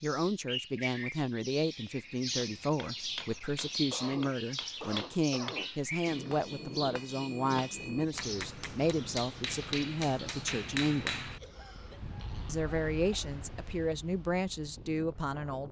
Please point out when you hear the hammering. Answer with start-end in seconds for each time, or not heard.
2.4-11.4.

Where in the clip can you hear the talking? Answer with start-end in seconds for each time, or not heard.
0.0-11.2, 12.4-15.6.